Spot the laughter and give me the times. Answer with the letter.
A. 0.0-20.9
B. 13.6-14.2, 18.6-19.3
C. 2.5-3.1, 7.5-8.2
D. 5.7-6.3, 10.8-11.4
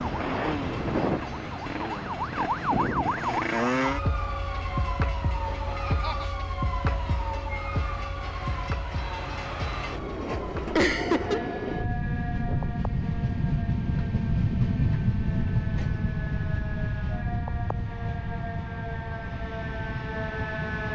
D.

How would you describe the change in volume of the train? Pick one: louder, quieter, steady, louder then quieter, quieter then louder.
louder then quieter.